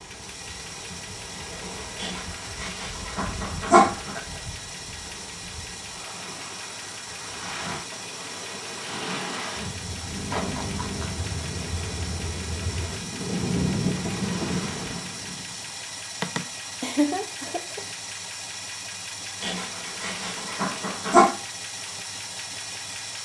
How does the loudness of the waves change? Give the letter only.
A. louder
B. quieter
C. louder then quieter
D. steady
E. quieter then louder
A.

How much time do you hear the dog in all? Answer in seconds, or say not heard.
4 s.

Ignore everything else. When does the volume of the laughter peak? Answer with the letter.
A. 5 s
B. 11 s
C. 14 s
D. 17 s
D.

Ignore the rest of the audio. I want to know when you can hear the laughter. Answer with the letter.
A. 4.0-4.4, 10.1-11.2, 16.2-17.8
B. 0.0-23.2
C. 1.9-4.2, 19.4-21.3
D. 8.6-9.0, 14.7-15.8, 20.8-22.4
A.